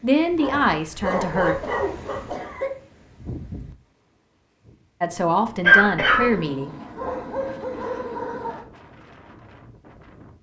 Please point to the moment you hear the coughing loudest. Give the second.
6 s.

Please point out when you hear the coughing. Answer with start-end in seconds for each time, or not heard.
0.5-2.7, 5.6-6.3.